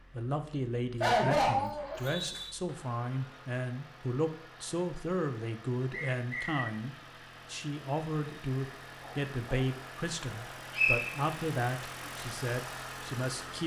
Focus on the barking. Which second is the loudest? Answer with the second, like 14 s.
1 s.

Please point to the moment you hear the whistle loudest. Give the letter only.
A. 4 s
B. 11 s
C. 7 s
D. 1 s
B.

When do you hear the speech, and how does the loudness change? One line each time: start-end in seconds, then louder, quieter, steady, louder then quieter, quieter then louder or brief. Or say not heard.
0.1-13.6 steady.